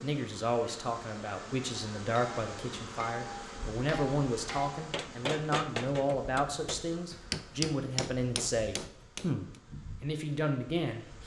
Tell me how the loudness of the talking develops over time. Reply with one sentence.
The loudness of the talking stays about the same.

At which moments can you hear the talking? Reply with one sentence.
You can hear the talking from 0.0 to 11.2 s.